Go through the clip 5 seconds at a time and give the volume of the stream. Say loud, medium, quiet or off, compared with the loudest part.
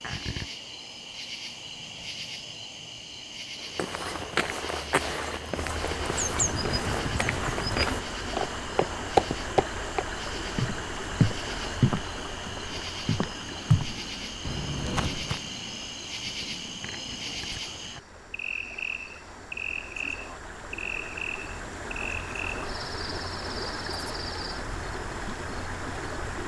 off, loud, loud, quiet, loud, loud.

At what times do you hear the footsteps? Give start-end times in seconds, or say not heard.
3.6-15.5.